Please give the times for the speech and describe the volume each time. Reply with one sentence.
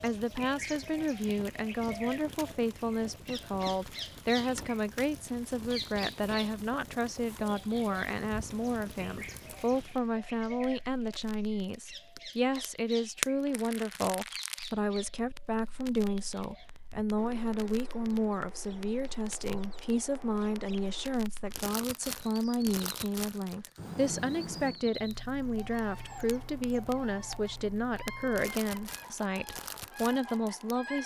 You can hear the speech from 0.0 to 31.0 s, at a steady volume.